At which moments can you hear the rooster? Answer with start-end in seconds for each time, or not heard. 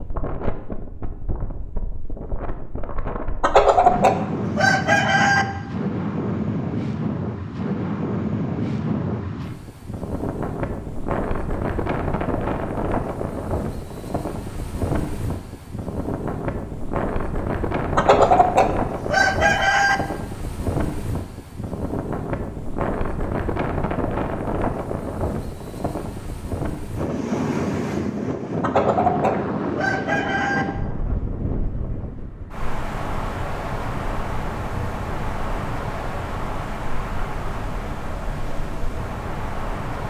3.4-5.5, 17.9-19.9, 28.6-30.6.